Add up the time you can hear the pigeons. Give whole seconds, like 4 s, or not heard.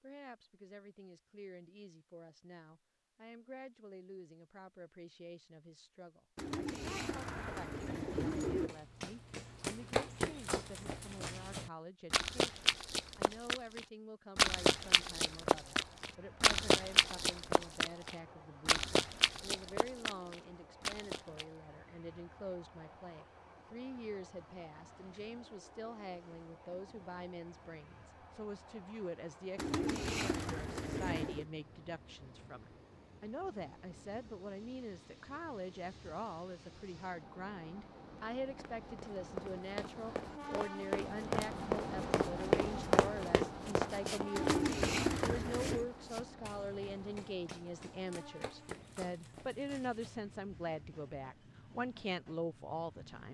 6 s.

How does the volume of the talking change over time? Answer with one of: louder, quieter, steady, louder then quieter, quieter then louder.
louder.